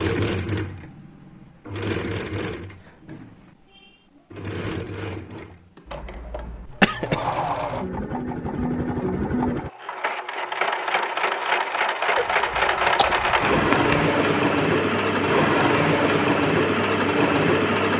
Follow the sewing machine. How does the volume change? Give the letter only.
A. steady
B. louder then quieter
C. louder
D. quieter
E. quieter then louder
C.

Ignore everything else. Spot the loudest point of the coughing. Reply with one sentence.
The volume of the coughing peaks at 7 seconds.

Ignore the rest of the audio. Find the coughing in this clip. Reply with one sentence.
You can hear the coughing from 6.7 to 7.2 s and from 12.2 to 14.1 s.